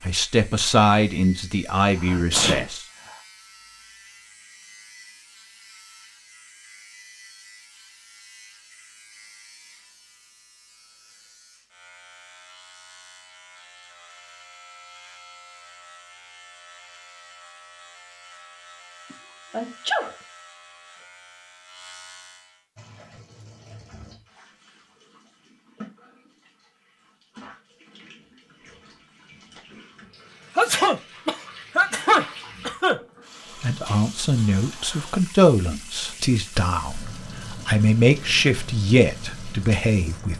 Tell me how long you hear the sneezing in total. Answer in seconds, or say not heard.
4 s.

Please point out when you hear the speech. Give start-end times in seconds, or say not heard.
0.0-2.9, 33.6-40.3.